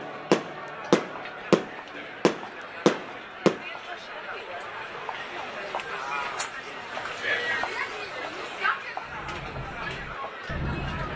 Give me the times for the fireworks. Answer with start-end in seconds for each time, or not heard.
0.0-3.6, 9.1-11.1.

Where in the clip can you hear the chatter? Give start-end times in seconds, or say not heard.
0.0-11.1.